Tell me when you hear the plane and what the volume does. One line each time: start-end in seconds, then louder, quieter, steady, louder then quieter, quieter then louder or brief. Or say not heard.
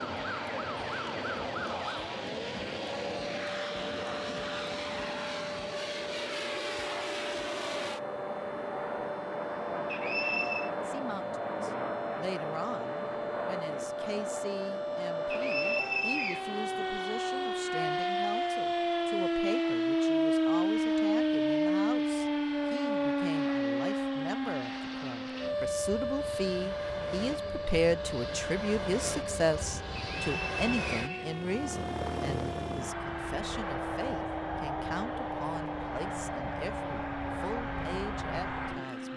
0.0-39.1 quieter then louder.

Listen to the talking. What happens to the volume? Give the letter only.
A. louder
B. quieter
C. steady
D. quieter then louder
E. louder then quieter
E.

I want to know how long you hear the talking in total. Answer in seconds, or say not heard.
28 s.